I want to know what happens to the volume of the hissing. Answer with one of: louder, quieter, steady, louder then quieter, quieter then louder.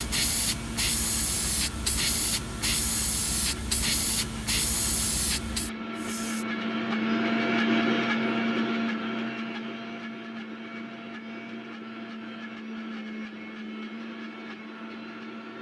steady.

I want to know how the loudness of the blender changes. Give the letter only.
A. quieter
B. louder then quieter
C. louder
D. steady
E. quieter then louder
B.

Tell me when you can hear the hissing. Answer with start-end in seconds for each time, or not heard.
0.0-6.5.